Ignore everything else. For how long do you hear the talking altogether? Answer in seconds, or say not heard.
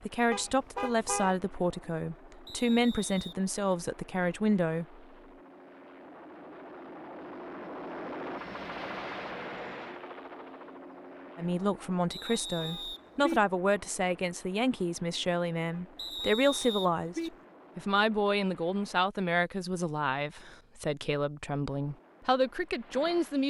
17 s.